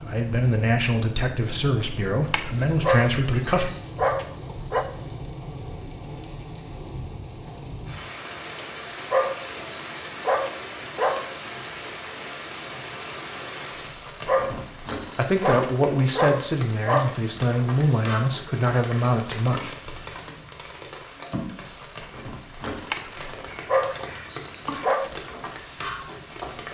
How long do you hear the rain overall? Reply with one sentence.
The rain can be heard for 27 seconds in total.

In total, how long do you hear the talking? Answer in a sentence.
You can hear the talking for 8 seconds altogether.